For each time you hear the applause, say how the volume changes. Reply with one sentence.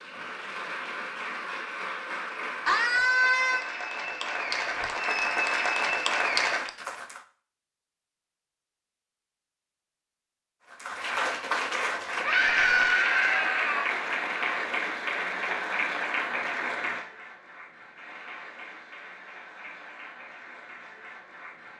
The applause can be heard from 0.0 to 7.2 s, getting louder; and from 10.7 to 21.7 s, getting quieter.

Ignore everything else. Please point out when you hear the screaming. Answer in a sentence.
You can hear the screaming from 2.6 to 3.6 s and from 12.2 to 13.9 s.